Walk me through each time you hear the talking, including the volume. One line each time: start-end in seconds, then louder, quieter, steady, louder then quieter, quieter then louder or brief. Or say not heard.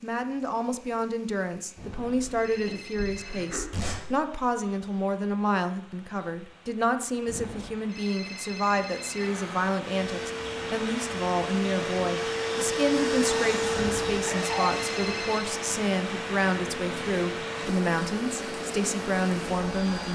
0.0-20.1 steady.